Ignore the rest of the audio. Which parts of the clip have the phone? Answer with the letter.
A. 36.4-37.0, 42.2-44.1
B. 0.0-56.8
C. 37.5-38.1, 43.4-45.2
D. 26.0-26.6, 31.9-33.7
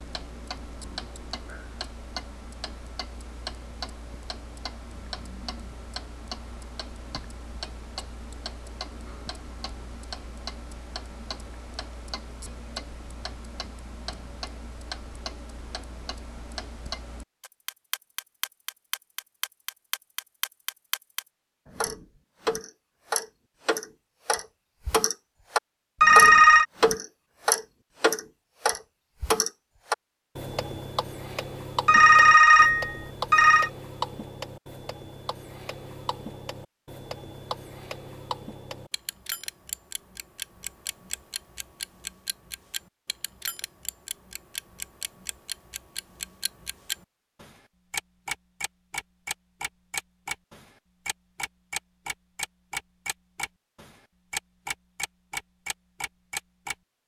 D.